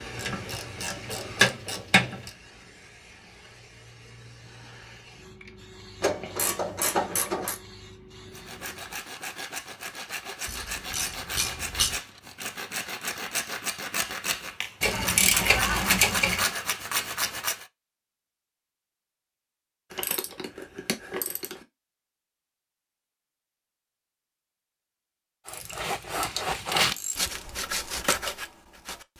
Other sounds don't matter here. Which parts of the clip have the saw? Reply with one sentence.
The saw can be heard from 8.3 to 17.6 s and from 25.4 to 29.1 s.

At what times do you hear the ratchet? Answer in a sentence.
The ratchet can be heard from 0.1 to 2.3 s, from 6.0 to 7.6 s, from 10.4 to 12.0 s, from 14.8 to 16.4 s, from 19.9 to 21.6 s and from 25.4 to 27.4 s.